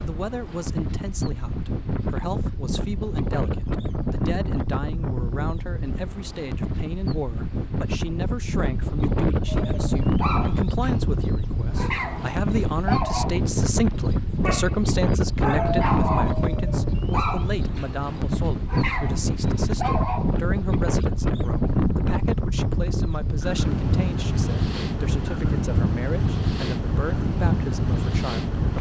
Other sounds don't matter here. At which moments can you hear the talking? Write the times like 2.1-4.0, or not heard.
0.0-28.7.